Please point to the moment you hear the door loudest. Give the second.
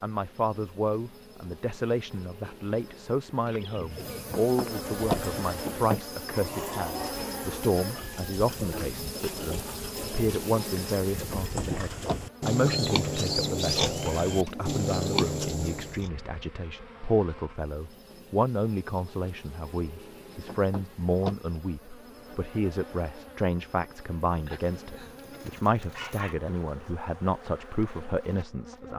5 s.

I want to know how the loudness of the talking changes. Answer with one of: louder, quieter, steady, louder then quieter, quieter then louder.
steady.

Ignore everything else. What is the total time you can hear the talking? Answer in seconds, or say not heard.
29 s.